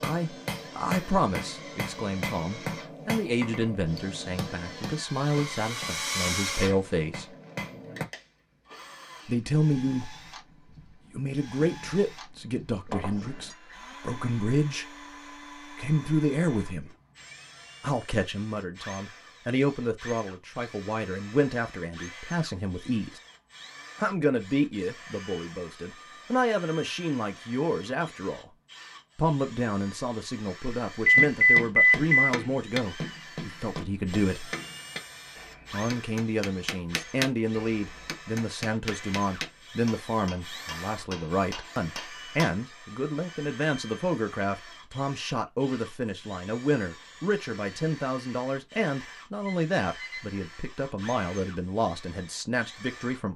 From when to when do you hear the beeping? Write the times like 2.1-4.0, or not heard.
12.9-13.6, 31.1-32.3, 49.5-50.2.